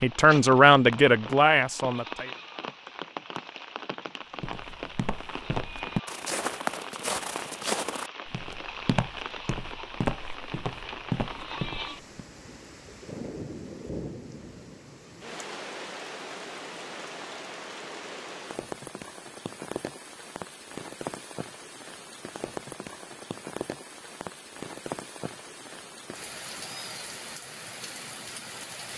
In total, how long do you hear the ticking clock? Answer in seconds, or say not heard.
not heard.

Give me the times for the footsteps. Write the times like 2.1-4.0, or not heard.
4.4-12.2.